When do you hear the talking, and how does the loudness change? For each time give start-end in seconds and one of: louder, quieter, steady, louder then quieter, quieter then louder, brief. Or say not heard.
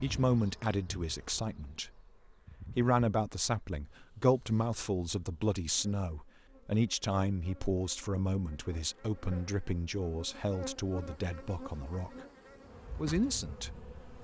0.0-2.0 brief
2.8-12.1 quieter
12.9-13.9 brief.